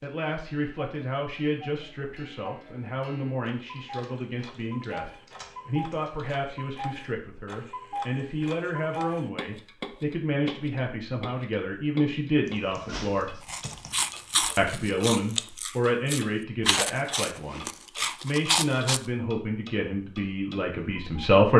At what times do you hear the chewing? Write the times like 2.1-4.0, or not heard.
13.4-19.0.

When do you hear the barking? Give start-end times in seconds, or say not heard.
not heard.